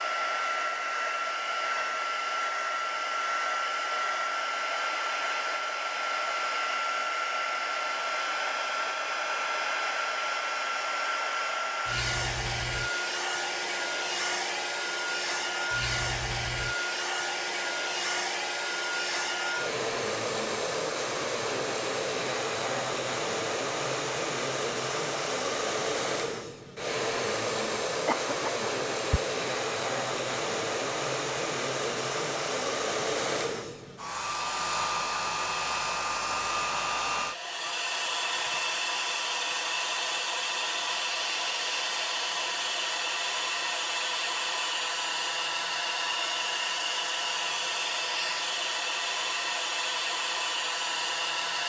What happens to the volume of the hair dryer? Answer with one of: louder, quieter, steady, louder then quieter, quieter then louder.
steady.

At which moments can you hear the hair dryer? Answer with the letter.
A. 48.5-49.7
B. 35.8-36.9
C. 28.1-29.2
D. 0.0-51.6
D.